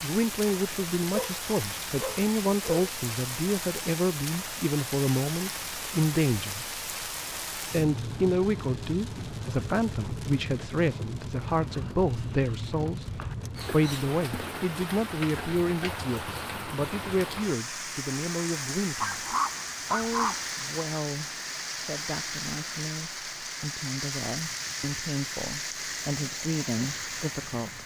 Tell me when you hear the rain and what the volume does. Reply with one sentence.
The rain can be heard from 0.0 to 27.8 s, at a steady volume.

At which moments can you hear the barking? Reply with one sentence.
The barking can be heard from 1.1 to 2.9 s, from 11.6 to 13.3 s and from 19.0 to 20.4 s.